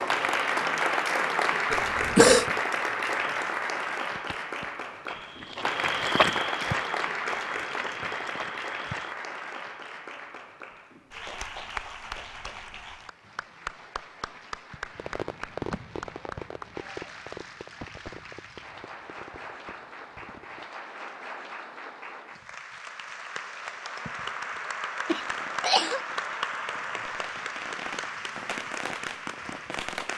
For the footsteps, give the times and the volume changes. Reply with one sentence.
You can hear the footsteps from 4.2 to 9.2 s, getting louder then quieter.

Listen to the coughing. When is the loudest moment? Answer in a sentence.
The volume of the coughing peaks at 2 seconds.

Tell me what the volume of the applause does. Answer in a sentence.
The loudness of the applause goes down, then up.